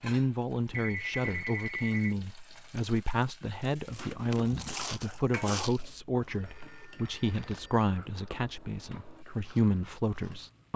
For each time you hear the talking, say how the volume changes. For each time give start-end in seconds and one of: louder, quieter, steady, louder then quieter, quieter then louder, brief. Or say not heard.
0.0-10.7 steady.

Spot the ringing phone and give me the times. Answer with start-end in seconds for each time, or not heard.
0.7-2.1, 6.4-7.8.